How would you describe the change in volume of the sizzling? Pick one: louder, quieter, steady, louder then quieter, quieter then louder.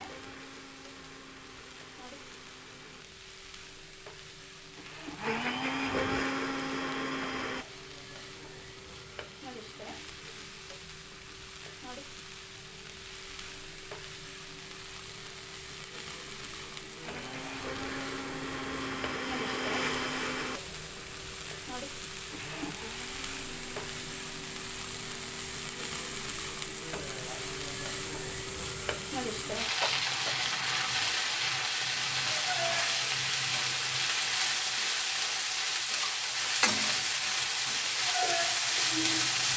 louder.